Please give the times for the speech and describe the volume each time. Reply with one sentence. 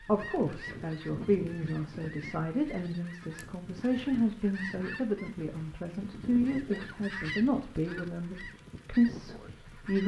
You can hear the speech from 0.1 to 10.0 s, at a steady volume.